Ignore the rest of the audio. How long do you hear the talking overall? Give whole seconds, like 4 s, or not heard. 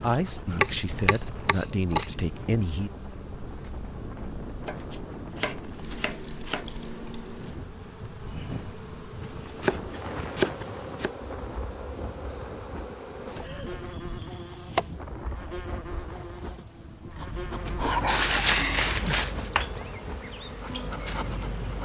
3 s.